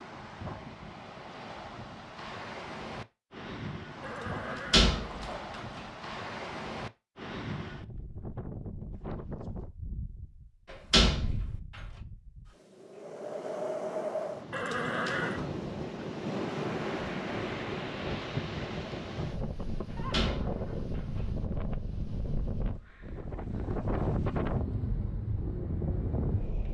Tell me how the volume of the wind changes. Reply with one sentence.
The loudness of the wind goes up.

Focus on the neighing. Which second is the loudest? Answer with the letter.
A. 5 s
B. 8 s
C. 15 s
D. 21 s
C.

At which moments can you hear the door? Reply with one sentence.
The door can be heard from 4.5 to 5.8 s, from 10.7 to 11.5 s and from 19.9 to 21.2 s.